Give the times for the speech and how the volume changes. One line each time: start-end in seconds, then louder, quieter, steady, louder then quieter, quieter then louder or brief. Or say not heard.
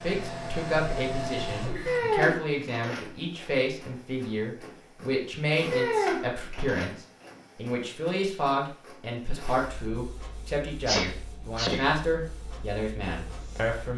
0.0-13.9 steady.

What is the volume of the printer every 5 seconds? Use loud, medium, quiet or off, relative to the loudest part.
loud, loud, quiet.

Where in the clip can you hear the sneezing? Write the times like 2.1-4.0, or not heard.
10.8-11.9.